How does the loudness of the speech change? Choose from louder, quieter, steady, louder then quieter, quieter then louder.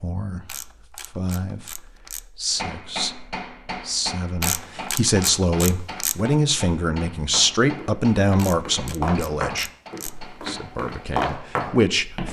louder then quieter.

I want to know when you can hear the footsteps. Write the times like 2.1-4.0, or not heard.
7.3-12.2.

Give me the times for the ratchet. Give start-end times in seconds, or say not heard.
0.5-2.2, 4.4-6.2, 8.3-10.2.